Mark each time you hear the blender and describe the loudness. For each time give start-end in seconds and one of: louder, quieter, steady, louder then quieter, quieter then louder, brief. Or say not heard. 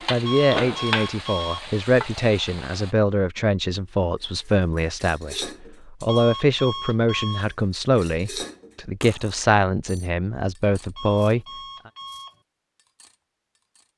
not heard.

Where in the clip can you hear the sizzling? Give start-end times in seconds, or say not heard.
0.0-2.9.